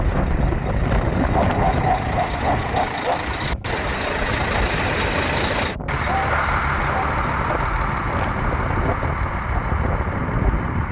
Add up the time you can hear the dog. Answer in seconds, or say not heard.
3 s.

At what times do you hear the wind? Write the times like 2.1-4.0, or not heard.
0.0-10.8.